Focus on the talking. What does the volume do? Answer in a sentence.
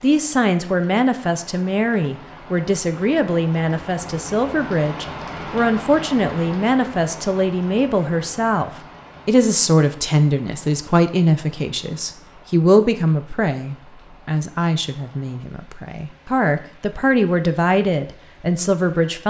The volume of the talking stays about the same.